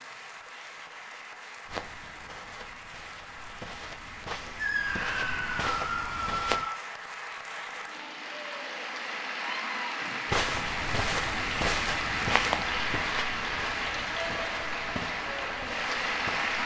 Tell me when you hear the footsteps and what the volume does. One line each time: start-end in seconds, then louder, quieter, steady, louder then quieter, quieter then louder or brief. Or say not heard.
1.6-6.7 louder
10.2-16.6 quieter.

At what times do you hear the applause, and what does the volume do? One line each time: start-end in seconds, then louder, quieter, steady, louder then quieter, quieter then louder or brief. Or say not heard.
0.0-16.6 louder.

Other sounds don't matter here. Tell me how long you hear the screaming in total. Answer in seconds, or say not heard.
3 s.